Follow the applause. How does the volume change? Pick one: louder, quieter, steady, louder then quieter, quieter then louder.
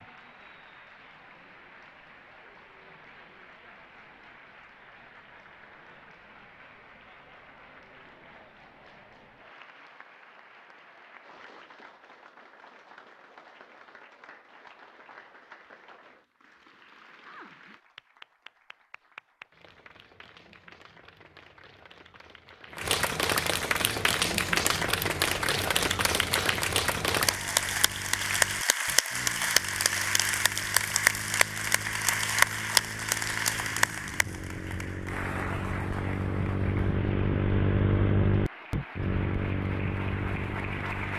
louder then quieter.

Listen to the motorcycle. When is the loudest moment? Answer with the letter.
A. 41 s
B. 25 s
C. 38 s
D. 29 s
C.